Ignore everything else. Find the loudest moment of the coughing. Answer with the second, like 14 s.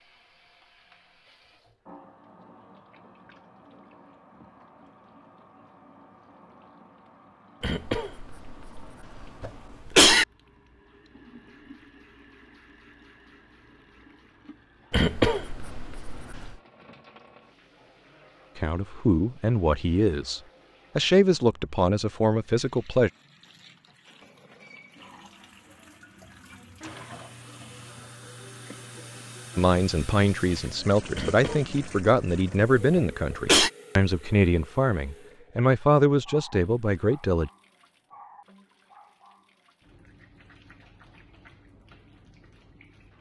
10 s.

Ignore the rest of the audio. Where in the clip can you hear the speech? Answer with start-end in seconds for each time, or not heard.
18.6-23.1, 29.6-37.5.